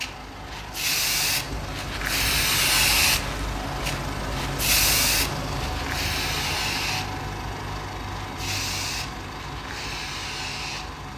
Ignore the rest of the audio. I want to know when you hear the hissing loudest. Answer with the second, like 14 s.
3 s.